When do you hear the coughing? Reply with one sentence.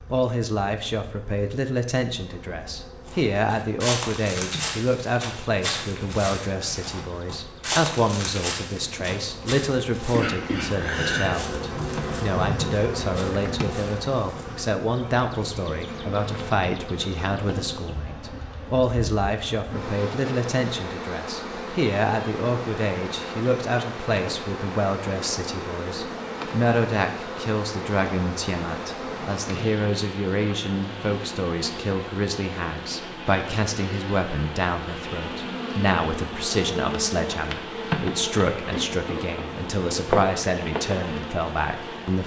You can hear the coughing from 10.1 to 11.3 s.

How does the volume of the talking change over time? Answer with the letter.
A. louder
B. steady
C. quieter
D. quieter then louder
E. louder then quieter
B.